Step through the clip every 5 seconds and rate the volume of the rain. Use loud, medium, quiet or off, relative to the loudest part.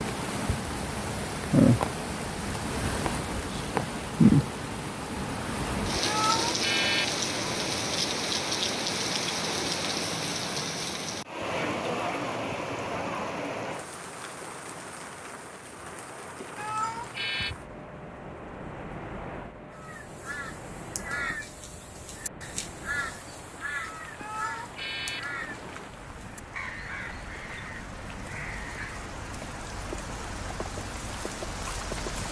loud, loud, medium, quiet, quiet, quiet, medium.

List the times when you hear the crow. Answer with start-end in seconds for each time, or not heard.
19.7-29.1.